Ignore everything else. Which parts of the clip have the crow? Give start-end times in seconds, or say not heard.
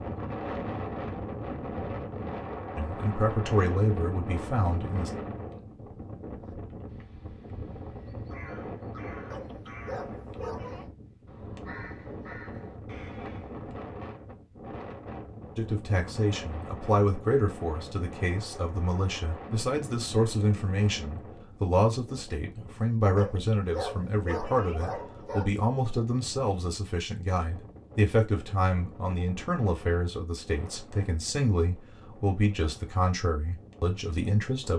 6.5-13.7.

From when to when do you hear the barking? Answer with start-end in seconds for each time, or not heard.
9.3-10.8, 23.1-25.6.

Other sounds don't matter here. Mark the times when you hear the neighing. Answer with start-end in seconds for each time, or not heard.
not heard.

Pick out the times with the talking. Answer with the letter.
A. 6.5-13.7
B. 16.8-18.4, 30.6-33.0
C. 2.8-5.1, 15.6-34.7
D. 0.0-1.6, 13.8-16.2
C.